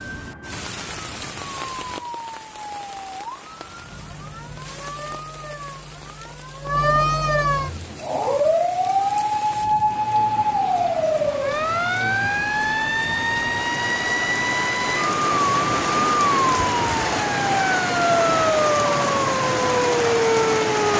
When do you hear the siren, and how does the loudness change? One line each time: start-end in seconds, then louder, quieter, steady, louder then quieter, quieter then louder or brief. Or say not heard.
0.0-20.9 louder.